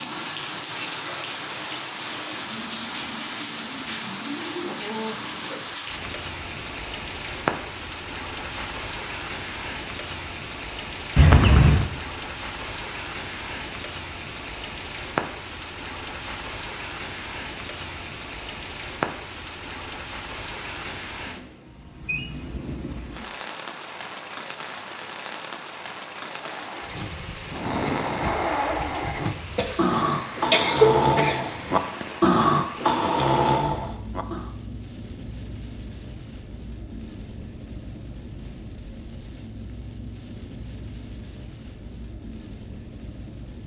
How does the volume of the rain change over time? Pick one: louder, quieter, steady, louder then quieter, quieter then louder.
quieter.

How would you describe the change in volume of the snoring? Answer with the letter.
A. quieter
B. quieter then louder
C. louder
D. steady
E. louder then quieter
C.